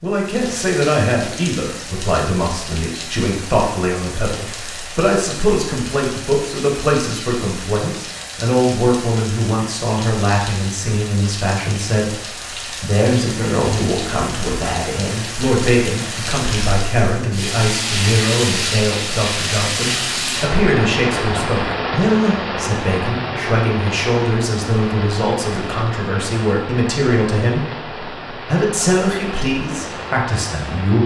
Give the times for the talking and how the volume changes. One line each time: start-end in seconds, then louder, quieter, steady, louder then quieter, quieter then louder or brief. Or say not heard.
0.0-31.0 steady.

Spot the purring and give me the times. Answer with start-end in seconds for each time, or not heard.
not heard.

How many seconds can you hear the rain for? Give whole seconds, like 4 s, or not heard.
31 s.